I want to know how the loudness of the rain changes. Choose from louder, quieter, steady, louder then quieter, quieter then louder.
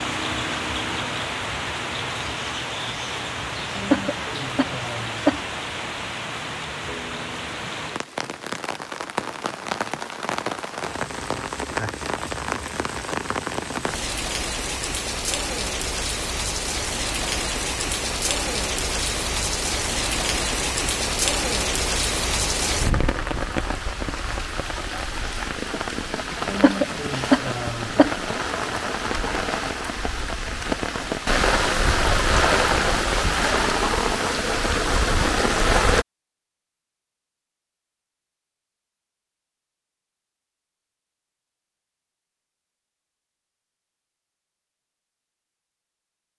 louder.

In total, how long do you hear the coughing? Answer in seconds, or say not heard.
4 s.